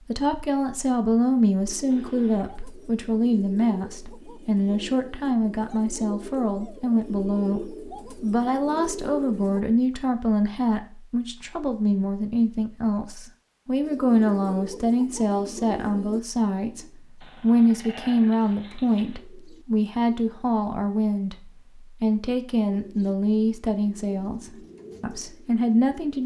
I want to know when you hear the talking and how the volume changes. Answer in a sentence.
You can hear the talking from 0.1 to 26.2 s, at a steady volume.